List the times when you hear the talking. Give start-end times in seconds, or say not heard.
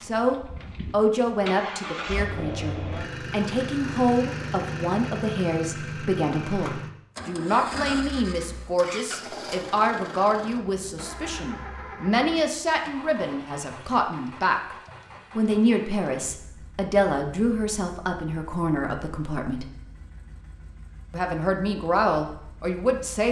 0.0-14.8, 15.3-19.7, 21.1-23.2.